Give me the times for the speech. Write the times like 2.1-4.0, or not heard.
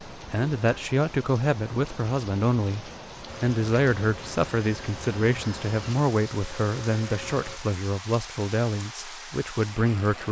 0.1-10.2.